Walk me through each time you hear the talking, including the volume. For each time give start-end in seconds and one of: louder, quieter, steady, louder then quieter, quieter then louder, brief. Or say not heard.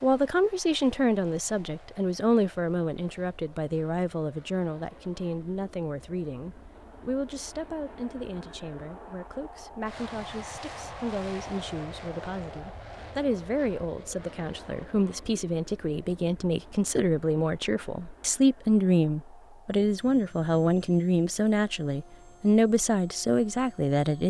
0.0-24.2 quieter then louder.